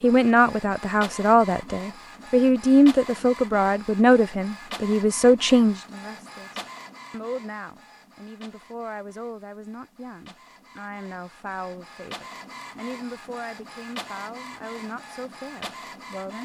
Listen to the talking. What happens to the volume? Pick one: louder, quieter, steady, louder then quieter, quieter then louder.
quieter.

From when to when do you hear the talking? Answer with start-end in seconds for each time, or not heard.
0.0-16.4.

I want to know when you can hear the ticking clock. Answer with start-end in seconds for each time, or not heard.
not heard.